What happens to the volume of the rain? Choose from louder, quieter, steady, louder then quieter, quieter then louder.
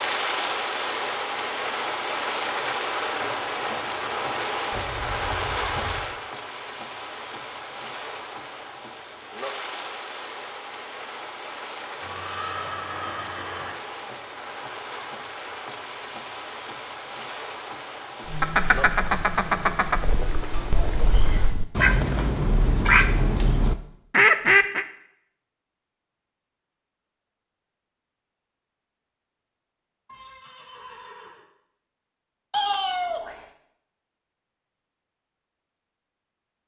quieter.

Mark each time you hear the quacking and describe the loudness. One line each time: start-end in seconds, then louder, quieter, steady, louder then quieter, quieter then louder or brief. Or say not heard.
18.2-24.9 quieter then louder.